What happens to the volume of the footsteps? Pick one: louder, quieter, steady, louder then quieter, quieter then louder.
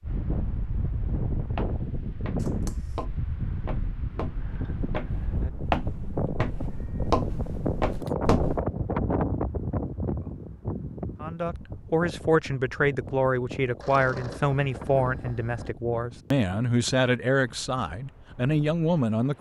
louder.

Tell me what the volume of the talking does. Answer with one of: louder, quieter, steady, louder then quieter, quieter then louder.
steady.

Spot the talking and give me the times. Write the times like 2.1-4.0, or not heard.
11.2-19.3.